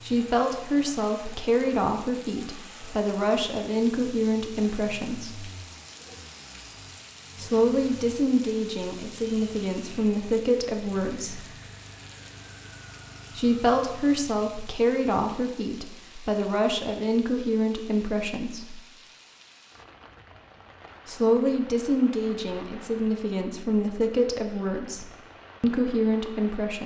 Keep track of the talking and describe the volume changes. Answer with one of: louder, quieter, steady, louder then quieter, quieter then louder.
steady.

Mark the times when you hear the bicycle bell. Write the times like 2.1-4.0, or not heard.
not heard.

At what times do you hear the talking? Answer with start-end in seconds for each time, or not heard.
0.0-5.5, 7.3-11.4, 13.3-18.8, 21.1-26.8.